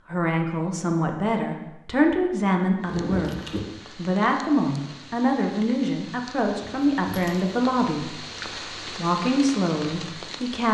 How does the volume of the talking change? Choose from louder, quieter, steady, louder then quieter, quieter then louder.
steady.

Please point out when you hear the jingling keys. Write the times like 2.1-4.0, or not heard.
2.9-3.6, 6.4-7.5.